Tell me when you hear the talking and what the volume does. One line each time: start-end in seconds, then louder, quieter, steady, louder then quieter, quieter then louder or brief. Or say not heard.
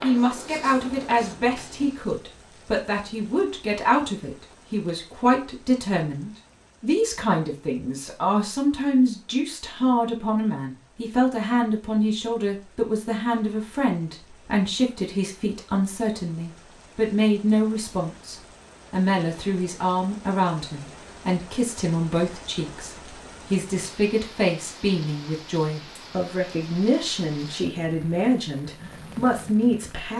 0.0-30.1 steady.